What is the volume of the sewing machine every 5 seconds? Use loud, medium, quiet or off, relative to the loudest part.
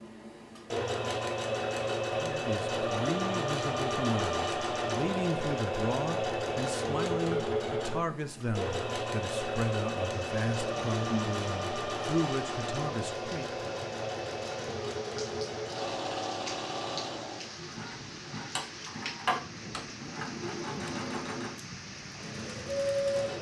loud, loud, loud, medium, loud.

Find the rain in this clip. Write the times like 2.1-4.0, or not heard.
10.1-23.3.